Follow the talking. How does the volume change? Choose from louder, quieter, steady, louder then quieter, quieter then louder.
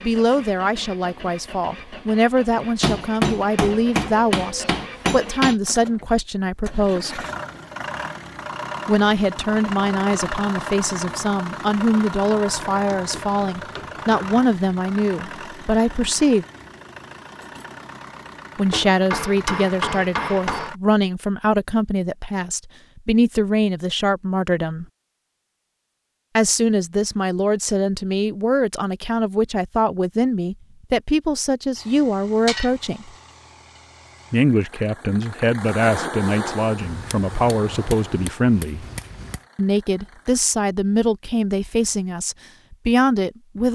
steady.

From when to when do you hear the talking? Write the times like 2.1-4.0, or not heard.
0.0-7.2, 8.8-16.4, 18.6-24.9, 26.4-33.1, 34.3-38.9, 39.5-43.7.